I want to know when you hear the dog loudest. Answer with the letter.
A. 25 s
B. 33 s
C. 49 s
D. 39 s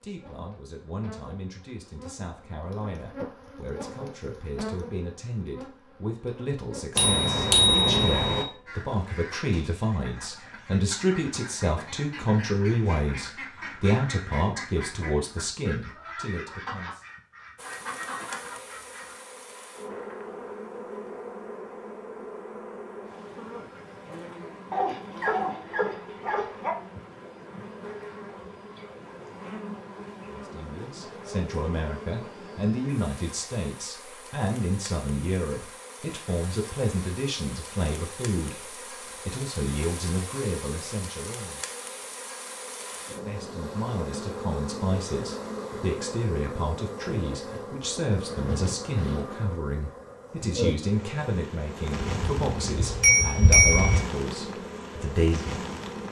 A.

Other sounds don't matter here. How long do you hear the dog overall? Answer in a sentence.
The dog can be heard for 2 seconds in total.